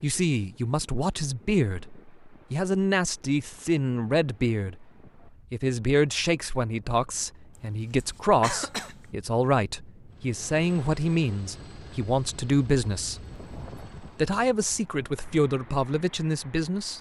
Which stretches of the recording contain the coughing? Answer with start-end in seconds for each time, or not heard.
7.5-9.1.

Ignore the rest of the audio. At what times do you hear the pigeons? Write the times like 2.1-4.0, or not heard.
not heard.